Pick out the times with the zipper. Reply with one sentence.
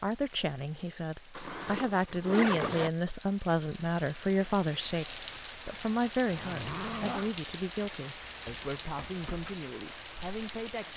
You can hear the zipper from 1.4 to 2.9 s and from 6.3 to 7.3 s.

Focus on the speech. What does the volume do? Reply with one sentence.
The loudness of the speech goes down.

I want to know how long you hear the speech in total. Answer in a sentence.
You can hear the speech for 11 seconds altogether.